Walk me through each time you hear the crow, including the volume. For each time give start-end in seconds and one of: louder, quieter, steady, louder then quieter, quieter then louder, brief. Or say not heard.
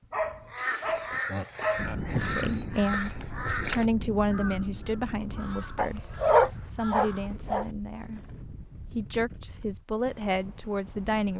0.5-7.3 quieter.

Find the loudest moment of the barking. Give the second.
6 s.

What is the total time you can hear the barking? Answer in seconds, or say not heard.
4 s.